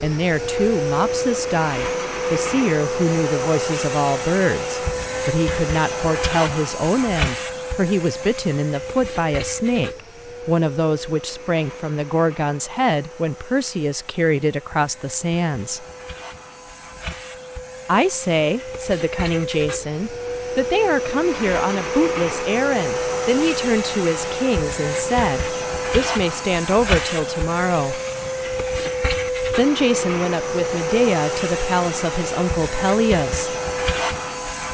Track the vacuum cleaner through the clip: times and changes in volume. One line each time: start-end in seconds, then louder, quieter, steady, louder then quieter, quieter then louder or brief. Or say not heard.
0.0-34.7 quieter then louder.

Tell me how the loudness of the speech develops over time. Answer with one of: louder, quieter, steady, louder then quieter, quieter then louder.
steady.